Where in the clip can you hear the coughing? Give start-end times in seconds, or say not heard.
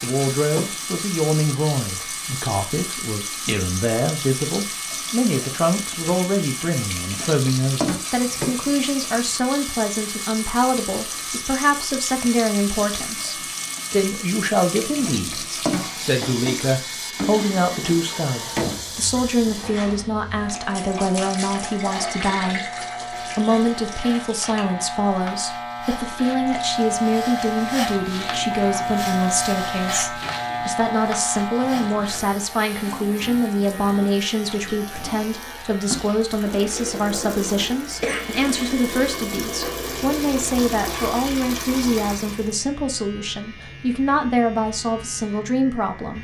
38.0-39.1.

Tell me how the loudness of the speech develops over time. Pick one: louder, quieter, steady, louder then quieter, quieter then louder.
steady.